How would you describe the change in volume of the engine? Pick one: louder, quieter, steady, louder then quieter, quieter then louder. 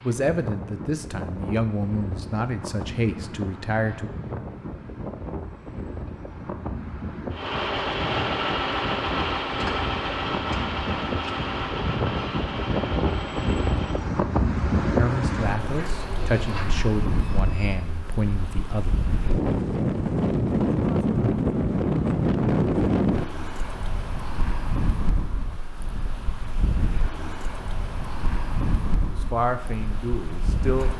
quieter.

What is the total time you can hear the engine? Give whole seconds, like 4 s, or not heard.
11 s.